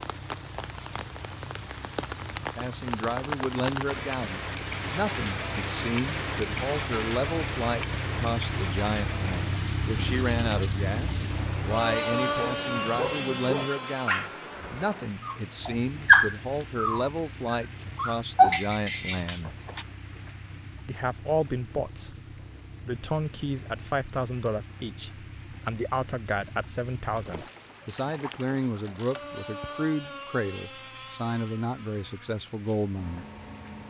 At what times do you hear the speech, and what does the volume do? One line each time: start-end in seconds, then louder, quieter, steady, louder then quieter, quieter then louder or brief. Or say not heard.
2.5-19.6 steady
20.9-22.1 brief
22.9-33.2 steady.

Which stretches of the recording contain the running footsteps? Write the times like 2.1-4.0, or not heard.
not heard.